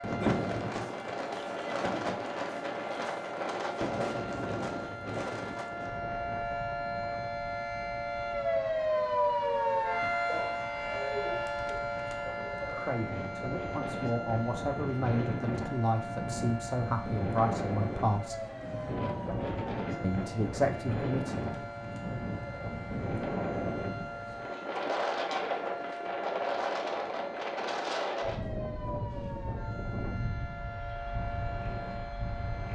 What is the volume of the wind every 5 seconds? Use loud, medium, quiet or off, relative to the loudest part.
loud, medium, medium, loud, loud, loud, medium.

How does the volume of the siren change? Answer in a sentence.
The volume of the siren goes up, then down.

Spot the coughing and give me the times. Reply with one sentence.
You can hear the coughing from 0.2 to 1.1 s.